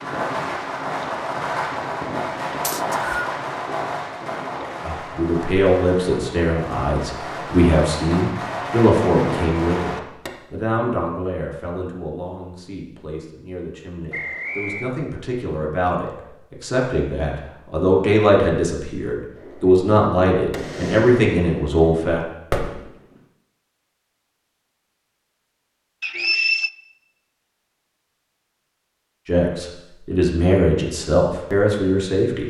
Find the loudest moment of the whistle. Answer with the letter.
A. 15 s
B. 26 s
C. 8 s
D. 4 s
B.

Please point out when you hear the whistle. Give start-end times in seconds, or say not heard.
2.6-3.2, 14.1-14.9, 26.0-26.7.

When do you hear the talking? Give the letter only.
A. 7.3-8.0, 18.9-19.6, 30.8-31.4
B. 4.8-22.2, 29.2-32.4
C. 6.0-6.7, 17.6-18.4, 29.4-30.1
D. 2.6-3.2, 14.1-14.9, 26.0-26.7
B.